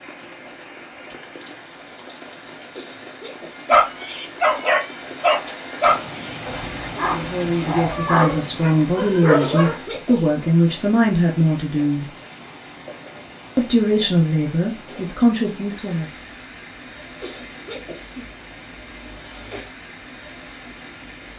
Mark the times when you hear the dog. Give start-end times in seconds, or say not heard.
3.6-9.8.